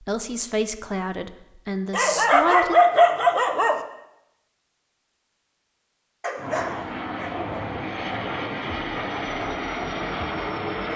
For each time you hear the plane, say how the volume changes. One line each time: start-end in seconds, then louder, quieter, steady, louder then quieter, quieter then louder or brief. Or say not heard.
6.3-10.9 steady.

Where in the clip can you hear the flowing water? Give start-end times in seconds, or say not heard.
not heard.